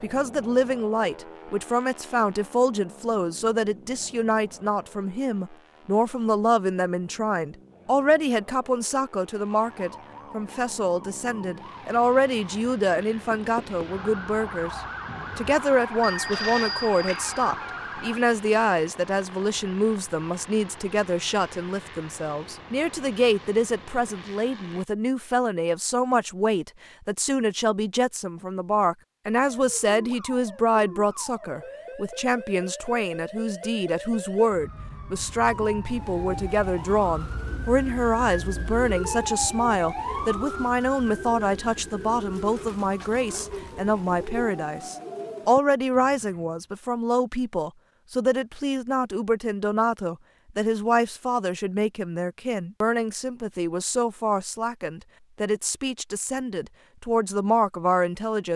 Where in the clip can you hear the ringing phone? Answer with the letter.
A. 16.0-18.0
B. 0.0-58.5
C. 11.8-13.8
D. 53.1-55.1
A.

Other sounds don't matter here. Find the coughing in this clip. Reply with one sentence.
You can't hear the coughing here.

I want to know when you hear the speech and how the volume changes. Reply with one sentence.
The speech can be heard from 0.0 to 58.5 s, at a steady volume.